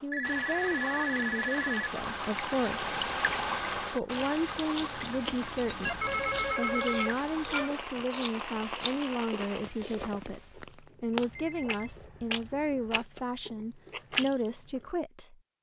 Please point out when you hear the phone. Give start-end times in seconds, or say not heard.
0.1-1.9, 5.8-7.7, 11.1-13.1.